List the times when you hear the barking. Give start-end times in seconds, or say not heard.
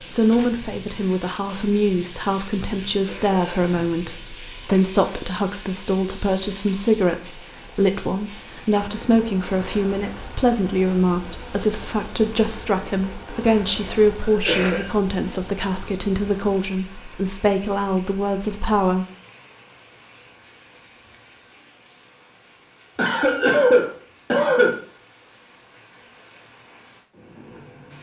not heard.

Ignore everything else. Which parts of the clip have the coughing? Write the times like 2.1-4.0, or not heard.
2.9-4.0, 14.2-14.8, 22.9-24.8.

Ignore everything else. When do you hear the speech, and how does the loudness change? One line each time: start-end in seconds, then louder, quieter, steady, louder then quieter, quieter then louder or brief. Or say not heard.
0.1-19.1 steady.